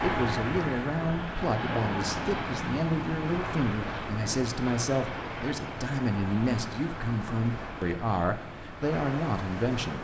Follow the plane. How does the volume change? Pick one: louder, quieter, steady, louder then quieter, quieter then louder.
quieter.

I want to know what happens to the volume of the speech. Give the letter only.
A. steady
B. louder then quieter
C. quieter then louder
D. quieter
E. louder
A.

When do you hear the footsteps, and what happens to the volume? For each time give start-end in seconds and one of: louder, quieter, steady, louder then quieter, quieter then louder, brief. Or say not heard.
not heard.